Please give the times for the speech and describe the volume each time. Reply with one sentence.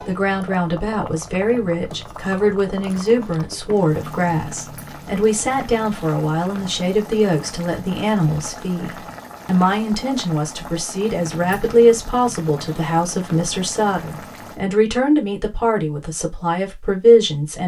The speech can be heard from 0.1 to 17.6 s, at a steady volume.